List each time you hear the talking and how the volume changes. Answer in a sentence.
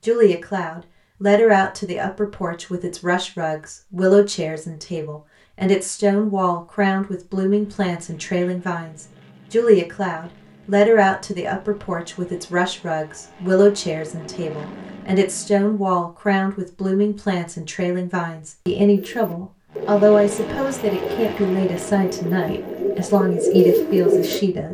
The talking can be heard from 0.0 to 24.6 s, at a steady volume.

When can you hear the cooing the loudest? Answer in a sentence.
The loudest moment of the cooing is at 24 seconds.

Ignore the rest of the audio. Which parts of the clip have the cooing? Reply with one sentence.
The cooing can be heard from 18.9 to 24.4 s.